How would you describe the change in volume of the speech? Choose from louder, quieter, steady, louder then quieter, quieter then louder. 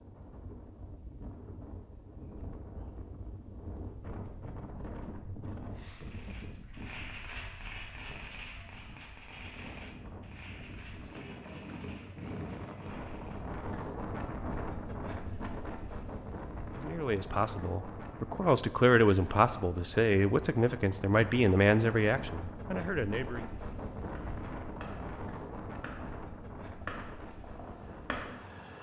louder then quieter.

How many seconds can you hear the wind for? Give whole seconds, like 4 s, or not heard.
29 s.